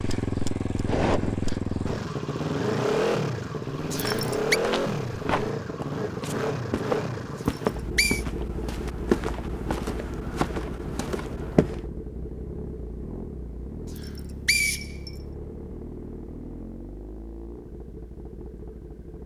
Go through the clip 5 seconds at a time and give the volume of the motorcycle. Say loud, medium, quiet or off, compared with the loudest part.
loud, medium, medium, quiet.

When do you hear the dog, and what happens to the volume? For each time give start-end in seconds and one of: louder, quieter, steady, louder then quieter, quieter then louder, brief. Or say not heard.
not heard.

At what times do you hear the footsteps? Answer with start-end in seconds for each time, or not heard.
3.6-11.8.